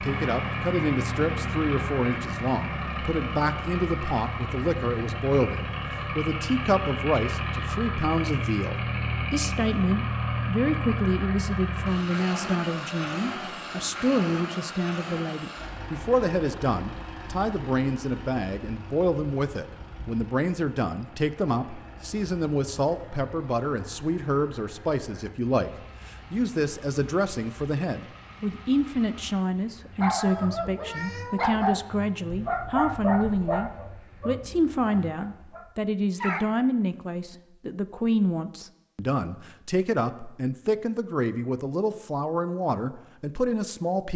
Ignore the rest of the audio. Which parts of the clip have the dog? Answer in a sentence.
You can hear the dog from 30.0 to 36.5 s.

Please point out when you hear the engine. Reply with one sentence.
The engine can be heard from 0.0 to 35.6 s.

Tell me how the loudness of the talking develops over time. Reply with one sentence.
The loudness of the talking stays about the same.